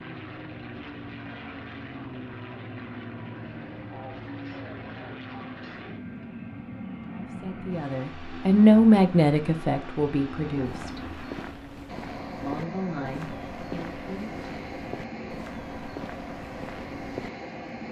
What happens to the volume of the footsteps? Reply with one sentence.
The volume of the footsteps stays about the same.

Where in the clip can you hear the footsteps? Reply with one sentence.
The footsteps can be heard from 10.6 to 17.3 s.